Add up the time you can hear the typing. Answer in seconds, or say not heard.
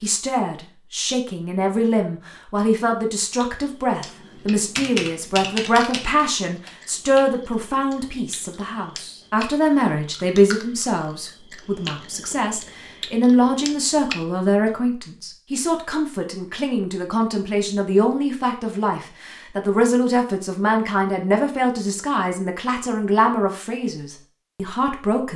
3 s.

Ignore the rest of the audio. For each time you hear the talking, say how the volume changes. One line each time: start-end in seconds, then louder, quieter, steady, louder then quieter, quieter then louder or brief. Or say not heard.
0.0-25.3 steady.